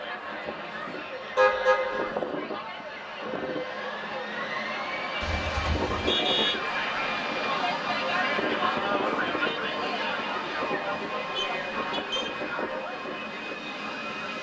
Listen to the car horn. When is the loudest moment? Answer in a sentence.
The volume of the car horn peaks at 2 seconds.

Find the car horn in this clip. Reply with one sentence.
You can hear the car horn from 1.4 to 2.1 s, from 5.2 to 6.6 s and from 11.3 to 12.3 s.